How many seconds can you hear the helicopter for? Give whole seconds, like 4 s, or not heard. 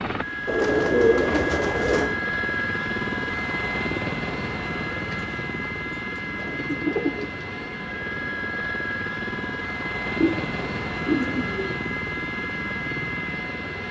14 s.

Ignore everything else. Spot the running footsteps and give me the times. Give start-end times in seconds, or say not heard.
not heard.